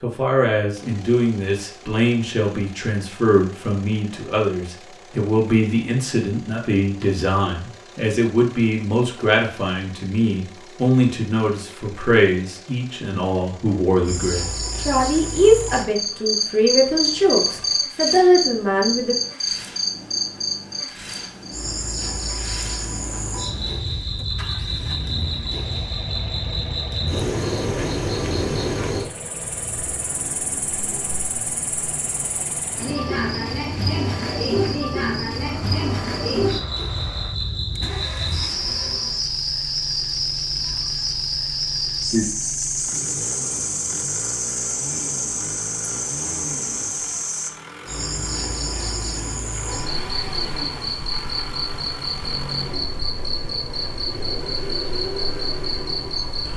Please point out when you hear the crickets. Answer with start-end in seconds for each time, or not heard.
14.1-56.5.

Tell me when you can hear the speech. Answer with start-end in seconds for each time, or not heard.
0.0-19.1.